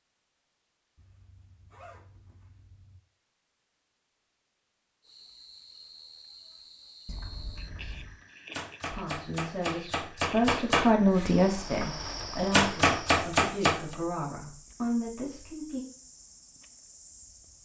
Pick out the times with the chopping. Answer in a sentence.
The chopping can be heard from 7.8 to 13.9 s.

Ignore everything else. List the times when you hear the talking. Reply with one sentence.
You can hear the talking from 8.9 to 15.8 s.